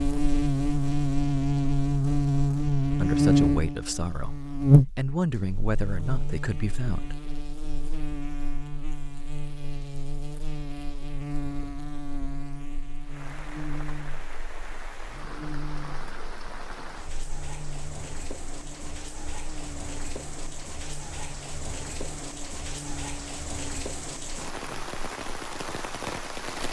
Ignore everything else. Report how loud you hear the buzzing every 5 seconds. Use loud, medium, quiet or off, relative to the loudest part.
loud, quiet, quiet, quiet, quiet, off.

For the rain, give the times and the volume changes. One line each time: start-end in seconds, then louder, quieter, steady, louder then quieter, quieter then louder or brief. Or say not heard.
13.0-26.6 louder.